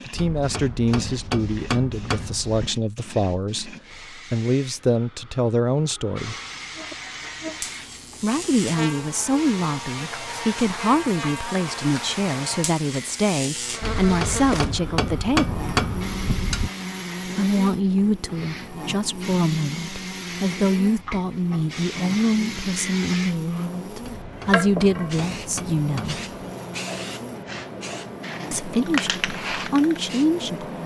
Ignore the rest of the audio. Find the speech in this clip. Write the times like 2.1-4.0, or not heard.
0.1-6.3, 8.2-15.8, 17.4-26.2, 28.5-30.8.